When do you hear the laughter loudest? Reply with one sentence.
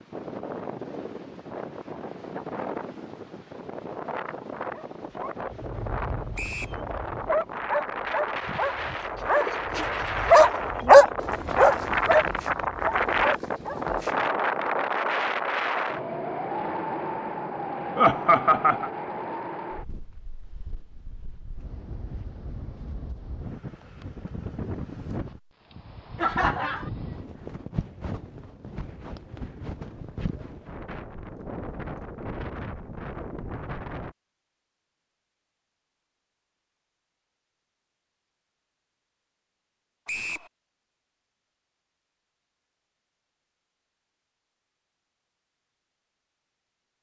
The volume of the laughter peaks at 18 seconds.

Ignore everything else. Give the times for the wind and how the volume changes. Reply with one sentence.
The wind can be heard from 0.0 to 34.1 s, getting louder then quieter.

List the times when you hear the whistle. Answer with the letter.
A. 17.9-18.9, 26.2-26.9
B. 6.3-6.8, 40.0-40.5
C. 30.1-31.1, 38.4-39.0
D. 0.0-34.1
B.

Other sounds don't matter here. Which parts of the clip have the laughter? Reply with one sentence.
The laughter can be heard from 17.9 to 18.9 s and from 26.2 to 26.9 s.